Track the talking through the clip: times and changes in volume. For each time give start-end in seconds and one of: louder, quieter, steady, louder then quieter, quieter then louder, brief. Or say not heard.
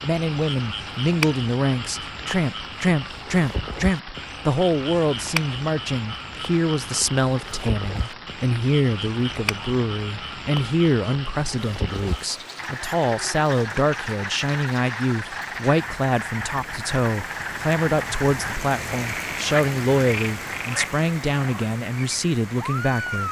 0.0-23.2 steady.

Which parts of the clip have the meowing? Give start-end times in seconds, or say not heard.
not heard.